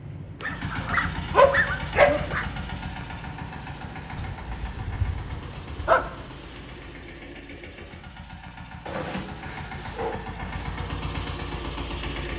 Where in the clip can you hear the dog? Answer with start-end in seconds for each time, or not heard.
0.4-2.5, 4.2-6.1, 8.8-10.7.